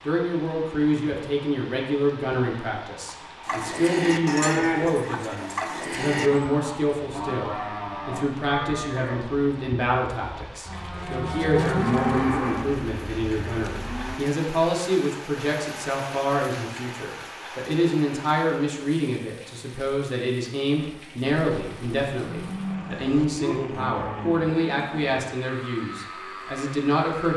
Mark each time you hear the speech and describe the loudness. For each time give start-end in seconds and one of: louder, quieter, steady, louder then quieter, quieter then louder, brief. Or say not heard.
0.1-27.3 steady.